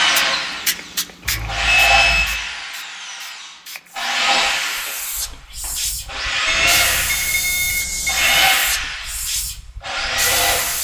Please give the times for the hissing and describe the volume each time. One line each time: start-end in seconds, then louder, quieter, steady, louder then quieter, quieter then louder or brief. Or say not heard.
0.0-10.7 quieter then louder.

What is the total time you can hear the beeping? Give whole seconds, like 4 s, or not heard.
3 s.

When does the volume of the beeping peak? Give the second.
2 s.